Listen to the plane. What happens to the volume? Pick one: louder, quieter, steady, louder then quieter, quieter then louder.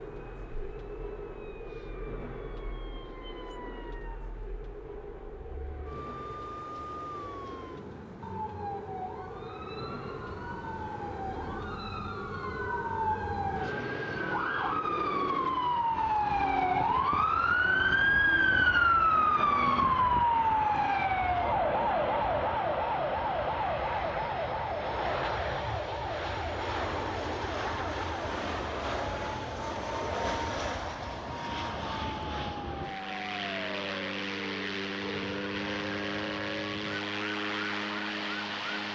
louder.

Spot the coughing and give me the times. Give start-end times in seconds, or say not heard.
not heard.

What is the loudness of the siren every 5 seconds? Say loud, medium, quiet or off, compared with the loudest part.
quiet, quiet, medium, loud, loud, quiet, quiet, quiet.